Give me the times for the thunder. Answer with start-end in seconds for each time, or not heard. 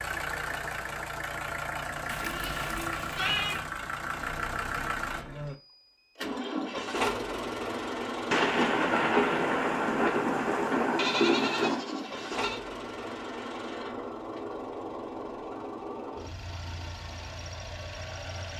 8.3-11.8.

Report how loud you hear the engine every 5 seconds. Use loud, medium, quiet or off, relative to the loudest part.
loud, loud, loud, medium.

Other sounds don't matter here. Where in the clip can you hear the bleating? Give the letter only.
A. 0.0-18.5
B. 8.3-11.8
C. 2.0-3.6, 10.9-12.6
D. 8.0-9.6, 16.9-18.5
C.